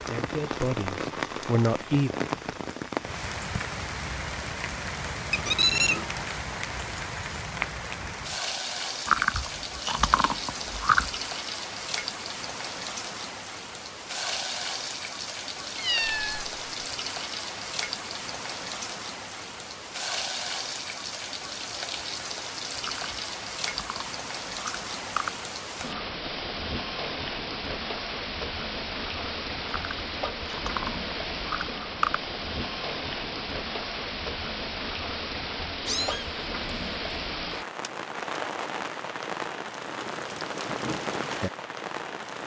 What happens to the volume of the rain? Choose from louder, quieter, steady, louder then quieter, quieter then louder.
steady.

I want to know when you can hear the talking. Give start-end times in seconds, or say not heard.
0.1-2.1.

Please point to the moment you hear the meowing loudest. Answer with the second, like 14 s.
6 s.